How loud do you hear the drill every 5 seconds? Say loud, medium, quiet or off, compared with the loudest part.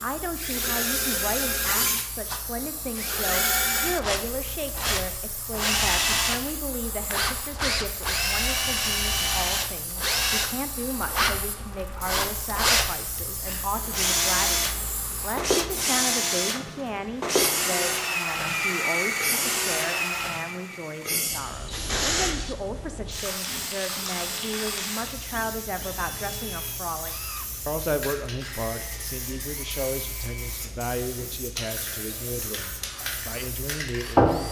loud, loud, loud, loud, medium, quiet, quiet.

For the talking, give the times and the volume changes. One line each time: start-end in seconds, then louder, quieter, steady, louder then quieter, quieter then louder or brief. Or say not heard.
0.0-34.4 steady.